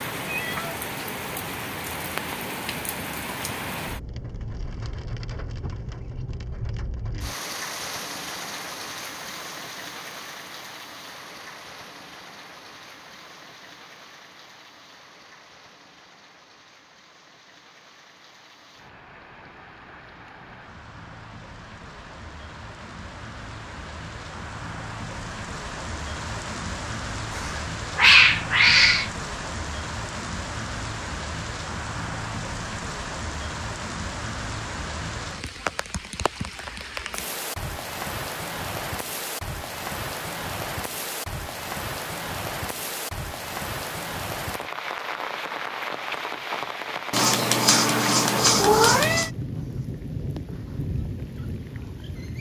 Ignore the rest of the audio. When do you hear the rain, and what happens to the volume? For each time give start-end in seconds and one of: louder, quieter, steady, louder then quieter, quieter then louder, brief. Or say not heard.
0.0-52.3 quieter then louder.